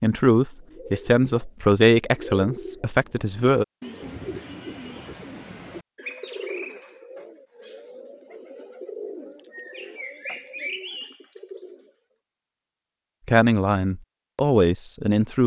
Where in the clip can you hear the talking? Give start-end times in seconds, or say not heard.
0.0-3.6, 13.2-15.4.